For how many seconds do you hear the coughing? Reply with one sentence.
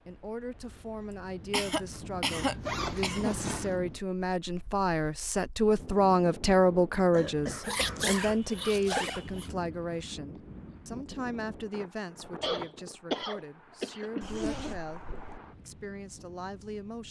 You can hear the coughing for 6 seconds altogether.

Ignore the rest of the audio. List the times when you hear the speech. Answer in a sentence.
The speech can be heard from 0.1 to 17.0 s.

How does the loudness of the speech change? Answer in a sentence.
The volume of the speech goes up, then down.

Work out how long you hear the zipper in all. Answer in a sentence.
The zipper can be heard for 5 seconds in total.